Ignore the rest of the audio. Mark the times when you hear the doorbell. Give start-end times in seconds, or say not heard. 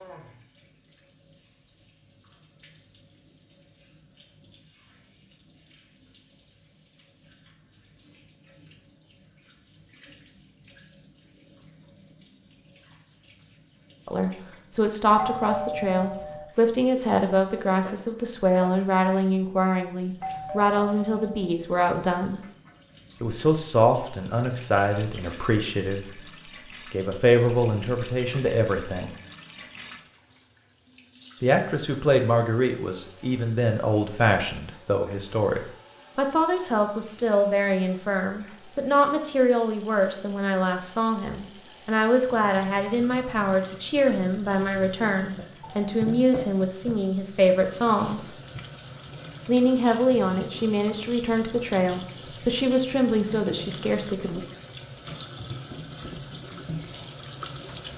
15.2-16.4, 20.2-21.5, 45.6-46.5.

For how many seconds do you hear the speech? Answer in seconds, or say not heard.
36 s.